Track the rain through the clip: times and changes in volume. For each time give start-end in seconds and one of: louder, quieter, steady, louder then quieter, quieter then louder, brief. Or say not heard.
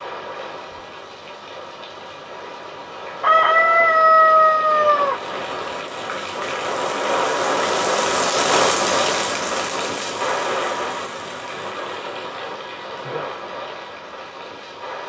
0.0-15.0 louder then quieter.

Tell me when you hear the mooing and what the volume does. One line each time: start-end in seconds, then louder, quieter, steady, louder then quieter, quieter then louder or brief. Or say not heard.
not heard.